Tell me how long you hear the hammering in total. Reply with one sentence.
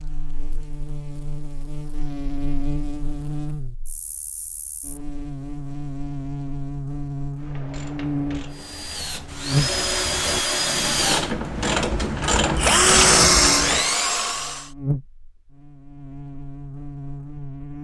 You can't hear the hammering here.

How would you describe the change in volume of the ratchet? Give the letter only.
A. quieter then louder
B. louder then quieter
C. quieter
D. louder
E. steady
D.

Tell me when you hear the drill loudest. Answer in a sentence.
The volume of the drill peaks at 13 seconds.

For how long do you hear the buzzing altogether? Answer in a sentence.
The buzzing can be heard for 18 seconds in total.